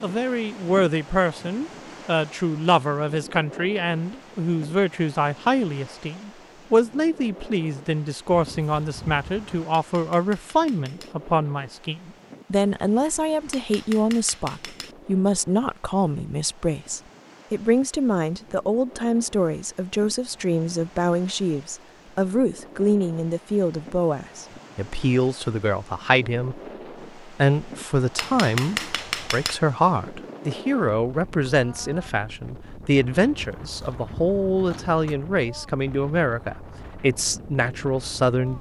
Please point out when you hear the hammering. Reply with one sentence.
You can hear the hammering from 9.9 to 11.2 s, from 13.5 to 14.9 s and from 28.1 to 29.6 s.